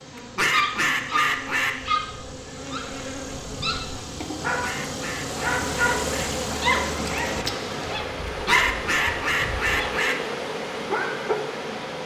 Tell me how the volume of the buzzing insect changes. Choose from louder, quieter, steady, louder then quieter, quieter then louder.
louder then quieter.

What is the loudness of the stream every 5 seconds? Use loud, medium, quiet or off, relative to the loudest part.
off, loud, loud.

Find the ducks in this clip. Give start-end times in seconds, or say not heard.
0.1-1.8, 4.6-6.4, 8.2-10.3.